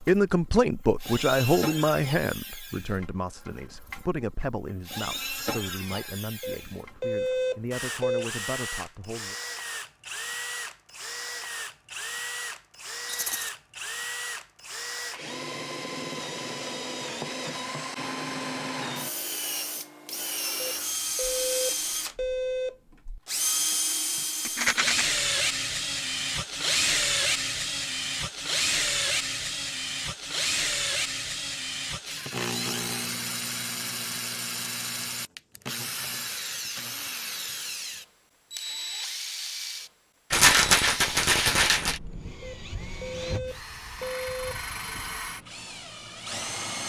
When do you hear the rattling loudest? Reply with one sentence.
The loudest moment of the rattling is at 41 seconds.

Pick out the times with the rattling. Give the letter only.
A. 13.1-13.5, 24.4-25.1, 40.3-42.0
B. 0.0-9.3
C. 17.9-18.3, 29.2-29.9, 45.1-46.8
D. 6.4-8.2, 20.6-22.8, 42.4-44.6
A.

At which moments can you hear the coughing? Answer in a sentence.
The coughing can't be heard in this clip.